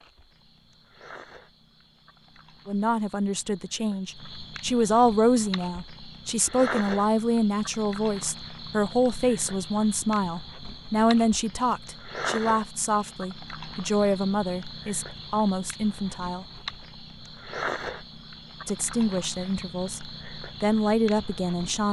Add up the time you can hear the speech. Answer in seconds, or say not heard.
17 s.